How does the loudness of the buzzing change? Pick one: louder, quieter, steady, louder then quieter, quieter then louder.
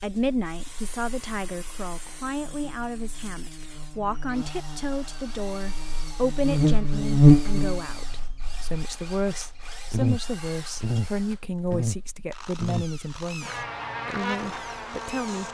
louder then quieter.